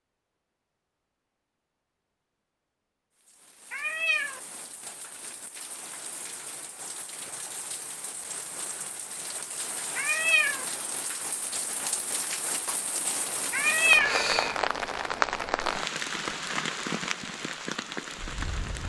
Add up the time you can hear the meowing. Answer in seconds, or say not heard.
2 s.